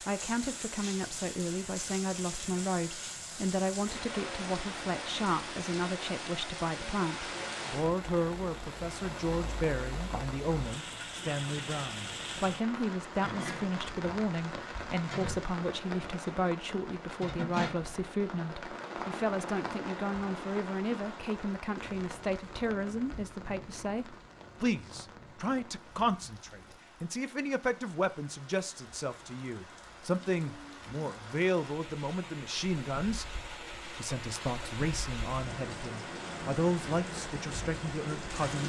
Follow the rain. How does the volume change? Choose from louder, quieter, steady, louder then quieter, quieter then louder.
quieter then louder.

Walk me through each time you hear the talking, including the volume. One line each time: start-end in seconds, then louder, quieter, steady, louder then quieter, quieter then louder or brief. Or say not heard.
0.0-38.6 steady.